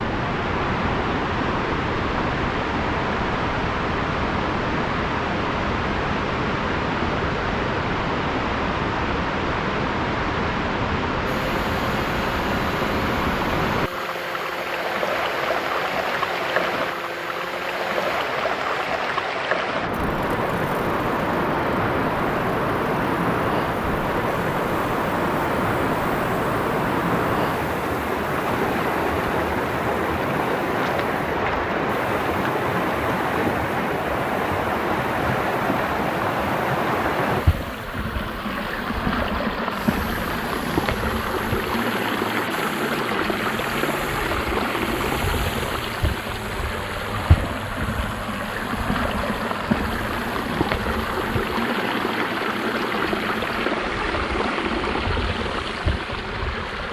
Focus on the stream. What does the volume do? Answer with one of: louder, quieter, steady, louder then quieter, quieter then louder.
steady.